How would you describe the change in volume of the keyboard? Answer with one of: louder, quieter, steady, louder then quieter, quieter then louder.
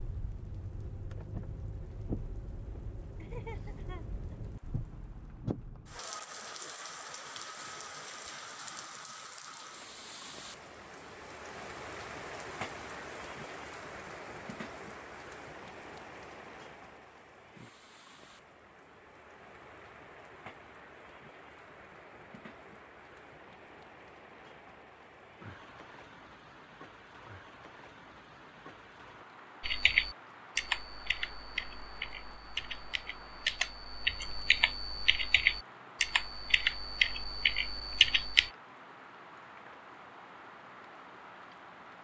quieter then louder.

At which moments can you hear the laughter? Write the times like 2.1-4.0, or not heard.
3.2-4.3.